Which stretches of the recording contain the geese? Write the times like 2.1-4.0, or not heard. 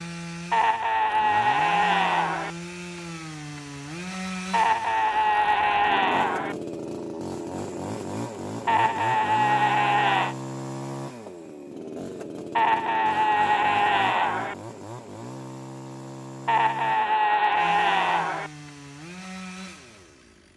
not heard.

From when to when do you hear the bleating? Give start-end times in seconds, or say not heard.
0.5-2.5, 4.5-6.5, 8.7-10.3, 12.6-14.6, 16.4-18.5.